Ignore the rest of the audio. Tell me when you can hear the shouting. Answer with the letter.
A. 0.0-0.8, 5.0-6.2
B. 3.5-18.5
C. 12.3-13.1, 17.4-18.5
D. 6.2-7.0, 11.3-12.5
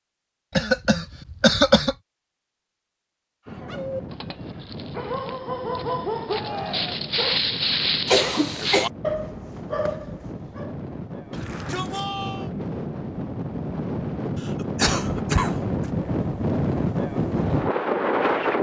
D.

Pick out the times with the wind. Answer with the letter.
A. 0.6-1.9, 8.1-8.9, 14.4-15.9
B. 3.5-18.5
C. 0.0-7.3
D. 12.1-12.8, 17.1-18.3
B.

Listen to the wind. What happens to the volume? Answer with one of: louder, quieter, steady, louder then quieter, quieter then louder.
louder.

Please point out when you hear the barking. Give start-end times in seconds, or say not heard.
3.5-10.8.